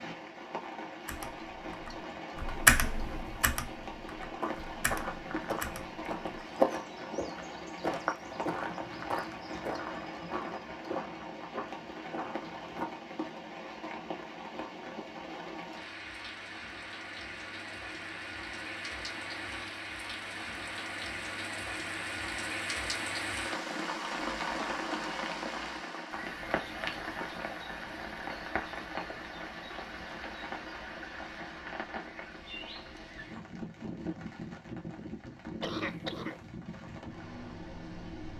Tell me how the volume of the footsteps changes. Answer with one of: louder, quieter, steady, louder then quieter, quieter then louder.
louder then quieter.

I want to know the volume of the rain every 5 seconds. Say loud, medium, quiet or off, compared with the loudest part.
medium, medium, medium, medium, loud, loud, medium, medium.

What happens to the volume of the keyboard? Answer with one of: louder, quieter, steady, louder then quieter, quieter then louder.
louder then quieter.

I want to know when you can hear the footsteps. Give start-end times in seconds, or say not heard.
4.4-12.8.